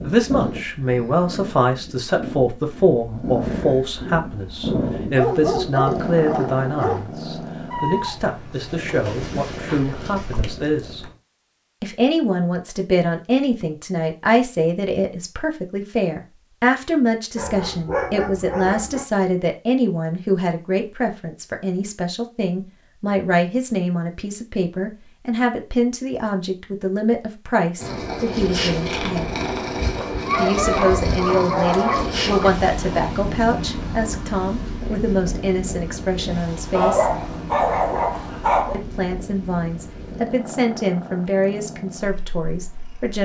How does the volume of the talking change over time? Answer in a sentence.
The loudness of the talking stays about the same.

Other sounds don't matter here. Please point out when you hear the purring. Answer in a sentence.
You can hear the purring from 0.0 to 11.2 s and from 27.8 to 43.2 s.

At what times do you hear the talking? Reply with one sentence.
The talking can be heard from 0.0 to 11.1 s, from 11.8 to 29.3 s, from 30.4 to 37.0 s and from 38.7 to 43.2 s.